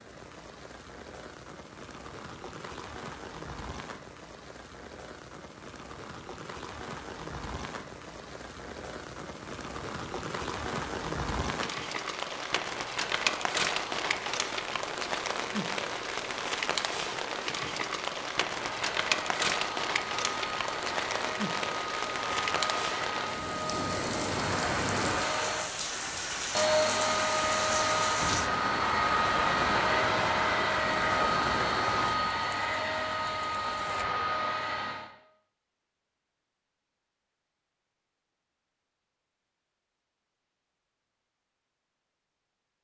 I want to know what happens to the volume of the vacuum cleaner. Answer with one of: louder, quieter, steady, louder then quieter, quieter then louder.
louder.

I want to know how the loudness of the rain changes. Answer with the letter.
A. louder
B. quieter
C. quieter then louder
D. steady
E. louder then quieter
A.